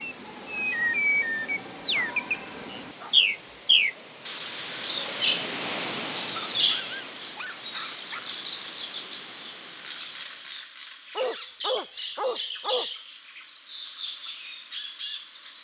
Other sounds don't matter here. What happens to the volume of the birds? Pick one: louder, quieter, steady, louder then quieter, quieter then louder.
quieter.